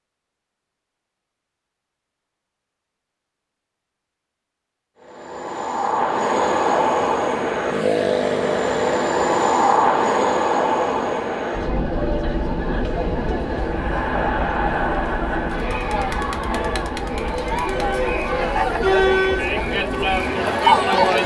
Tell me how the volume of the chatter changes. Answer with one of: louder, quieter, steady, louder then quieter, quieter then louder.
louder.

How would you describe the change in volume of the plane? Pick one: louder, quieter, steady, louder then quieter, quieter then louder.
quieter.